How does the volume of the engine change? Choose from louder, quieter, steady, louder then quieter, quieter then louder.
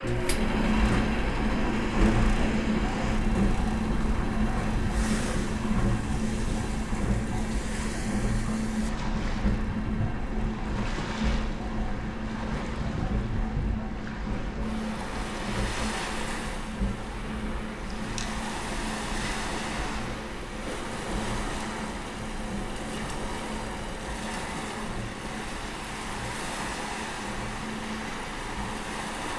quieter.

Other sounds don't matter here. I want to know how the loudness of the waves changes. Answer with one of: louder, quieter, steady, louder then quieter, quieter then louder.
steady.